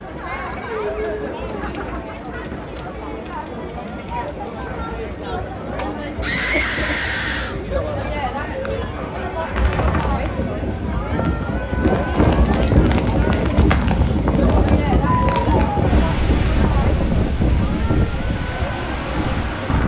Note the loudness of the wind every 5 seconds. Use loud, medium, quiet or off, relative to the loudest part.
quiet, medium, loud, loud.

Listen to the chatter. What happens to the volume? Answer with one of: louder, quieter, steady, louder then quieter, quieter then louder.
steady.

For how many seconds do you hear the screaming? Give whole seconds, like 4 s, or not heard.
2 s.